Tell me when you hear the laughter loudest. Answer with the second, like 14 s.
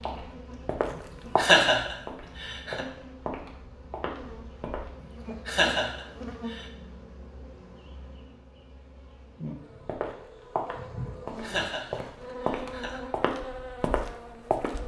2 s.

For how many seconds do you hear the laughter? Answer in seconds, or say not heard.
4 s.